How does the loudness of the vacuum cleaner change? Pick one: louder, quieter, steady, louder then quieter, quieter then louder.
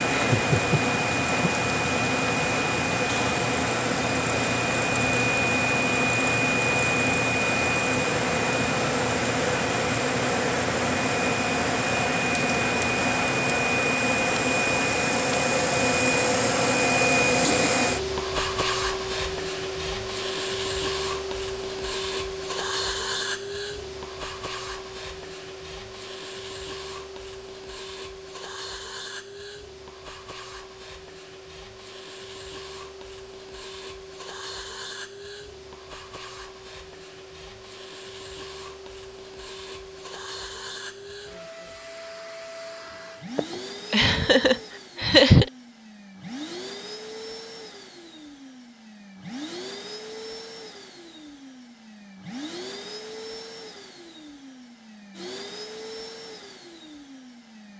quieter.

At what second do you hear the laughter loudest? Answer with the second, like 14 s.
45 s.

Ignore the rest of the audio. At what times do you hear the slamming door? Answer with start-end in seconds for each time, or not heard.
not heard.